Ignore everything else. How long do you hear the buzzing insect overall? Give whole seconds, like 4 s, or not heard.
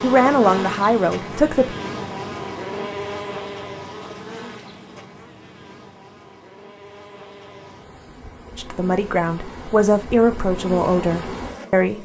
12 s.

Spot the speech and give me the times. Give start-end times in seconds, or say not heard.
0.0-1.8, 8.6-11.9.